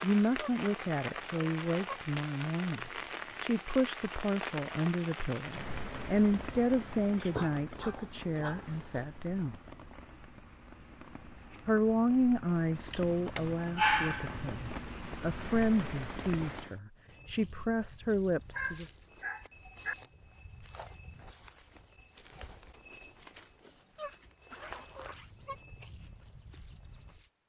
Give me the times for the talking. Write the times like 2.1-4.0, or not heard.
0.0-9.6, 11.7-18.9.